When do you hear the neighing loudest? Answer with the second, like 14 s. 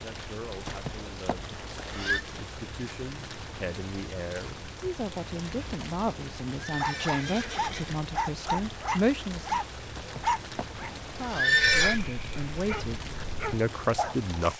12 s.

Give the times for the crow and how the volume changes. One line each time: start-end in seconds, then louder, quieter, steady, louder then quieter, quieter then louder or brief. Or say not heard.
not heard.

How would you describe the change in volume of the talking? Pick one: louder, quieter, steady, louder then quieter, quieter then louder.
louder.